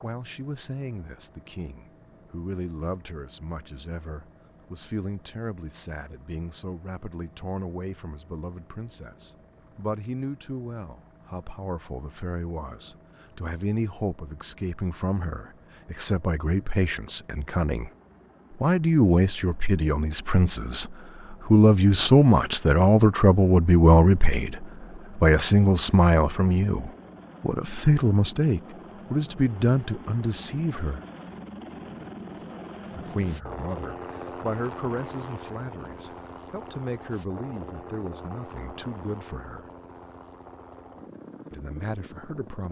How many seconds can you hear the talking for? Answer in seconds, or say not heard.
38 s.